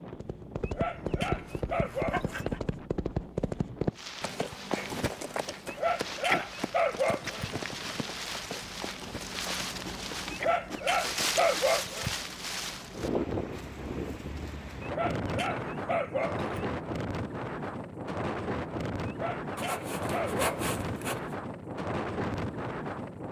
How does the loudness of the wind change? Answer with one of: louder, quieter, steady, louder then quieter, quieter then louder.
louder.